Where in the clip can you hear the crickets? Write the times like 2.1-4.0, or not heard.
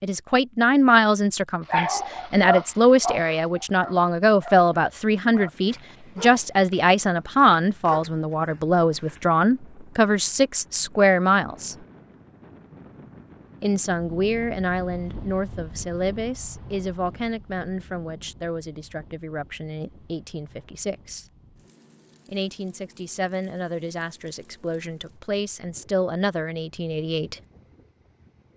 not heard.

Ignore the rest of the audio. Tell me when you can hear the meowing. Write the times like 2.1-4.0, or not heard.
not heard.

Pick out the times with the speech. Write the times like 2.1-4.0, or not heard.
0.0-11.8, 13.6-21.2, 22.2-27.4.